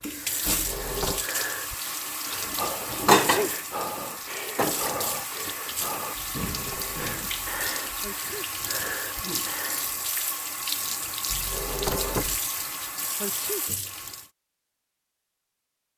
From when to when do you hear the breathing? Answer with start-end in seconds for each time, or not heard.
0.1-9.9.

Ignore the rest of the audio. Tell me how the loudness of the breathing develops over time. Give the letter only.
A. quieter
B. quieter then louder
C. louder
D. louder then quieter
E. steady
E.